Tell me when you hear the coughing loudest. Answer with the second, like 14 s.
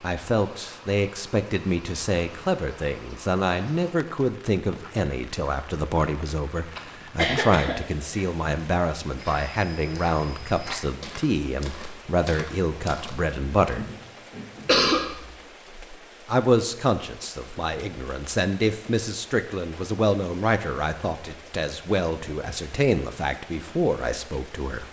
15 s.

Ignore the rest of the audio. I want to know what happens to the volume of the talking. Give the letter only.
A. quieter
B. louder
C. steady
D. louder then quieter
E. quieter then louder
C.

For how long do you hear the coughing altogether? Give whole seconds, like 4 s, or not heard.
2 s.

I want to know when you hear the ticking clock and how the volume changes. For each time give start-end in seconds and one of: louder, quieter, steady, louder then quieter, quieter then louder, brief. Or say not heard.
not heard.